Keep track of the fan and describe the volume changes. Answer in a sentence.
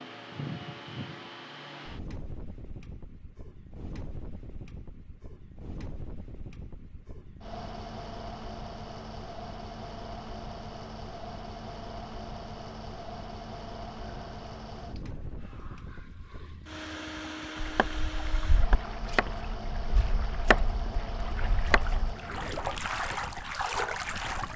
The loudness of the fan stays about the same.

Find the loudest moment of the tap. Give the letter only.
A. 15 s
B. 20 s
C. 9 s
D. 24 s
D.